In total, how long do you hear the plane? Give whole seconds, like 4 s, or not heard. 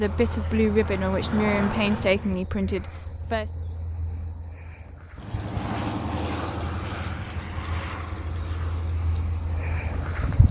8 s.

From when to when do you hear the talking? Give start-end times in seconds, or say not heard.
0.0-3.5.